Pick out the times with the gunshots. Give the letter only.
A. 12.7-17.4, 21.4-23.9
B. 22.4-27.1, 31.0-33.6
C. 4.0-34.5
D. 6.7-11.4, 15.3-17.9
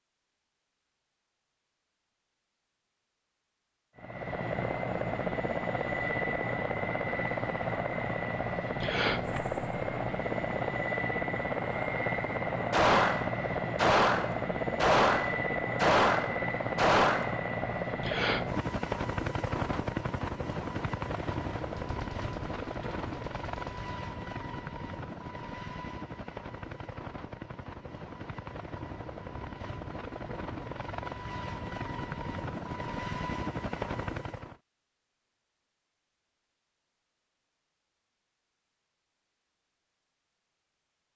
A.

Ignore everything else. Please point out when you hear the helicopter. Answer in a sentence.
The helicopter can be heard from 4.0 to 34.5 s.